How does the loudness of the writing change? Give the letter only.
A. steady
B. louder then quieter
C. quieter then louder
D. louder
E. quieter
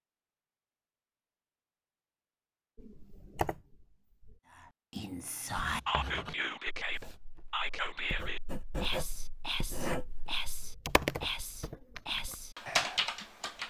C.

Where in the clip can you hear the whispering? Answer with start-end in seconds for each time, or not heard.
4.5-13.1.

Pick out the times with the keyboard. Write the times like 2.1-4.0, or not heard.
2.8-4.3, 10.1-13.6.